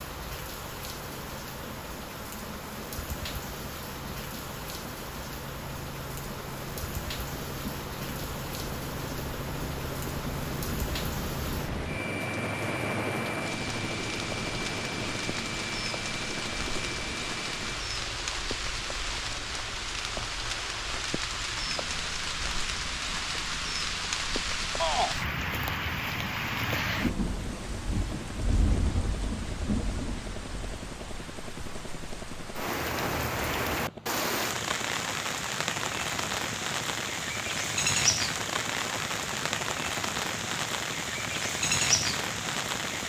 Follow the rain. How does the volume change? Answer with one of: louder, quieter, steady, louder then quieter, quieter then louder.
louder.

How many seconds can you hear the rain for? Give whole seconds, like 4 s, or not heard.
43 s.